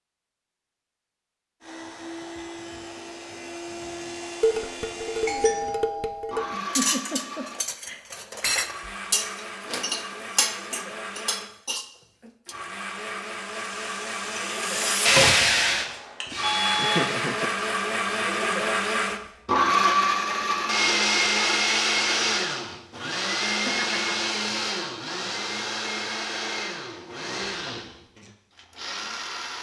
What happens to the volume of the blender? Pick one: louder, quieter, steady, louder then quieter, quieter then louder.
louder then quieter.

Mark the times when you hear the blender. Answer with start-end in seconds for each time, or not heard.
1.6-29.5.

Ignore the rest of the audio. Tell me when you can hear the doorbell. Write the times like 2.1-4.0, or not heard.
5.2-6.6, 16.4-17.1.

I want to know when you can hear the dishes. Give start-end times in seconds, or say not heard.
4.4-12.6.